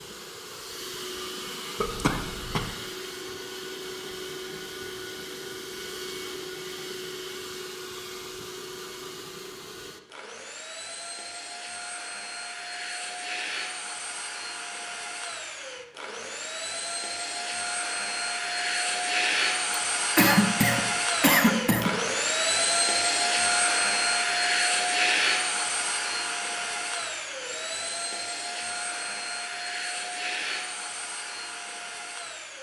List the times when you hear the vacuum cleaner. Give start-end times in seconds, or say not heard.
0.0-32.5.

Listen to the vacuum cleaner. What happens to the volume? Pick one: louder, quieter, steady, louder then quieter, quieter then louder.
louder then quieter.